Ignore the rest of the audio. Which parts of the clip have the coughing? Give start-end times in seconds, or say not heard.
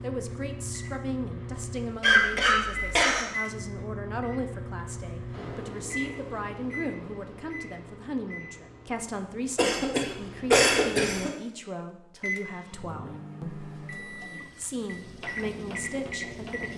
2.0-3.2, 9.6-11.3.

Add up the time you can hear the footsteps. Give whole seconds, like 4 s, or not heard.
not heard.